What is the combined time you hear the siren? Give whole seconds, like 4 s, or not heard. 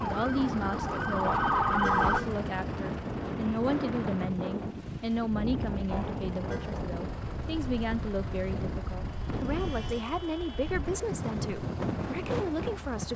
2 s.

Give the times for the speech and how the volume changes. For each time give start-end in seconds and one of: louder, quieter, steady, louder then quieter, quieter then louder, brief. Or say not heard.
0.0-13.1 steady.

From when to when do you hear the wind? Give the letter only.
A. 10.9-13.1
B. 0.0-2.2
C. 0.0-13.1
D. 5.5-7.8
C.